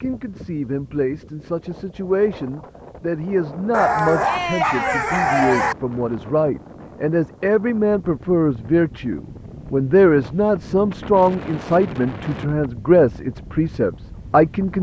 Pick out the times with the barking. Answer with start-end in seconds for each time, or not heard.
3.7-5.8.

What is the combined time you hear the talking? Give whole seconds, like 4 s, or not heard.
15 s.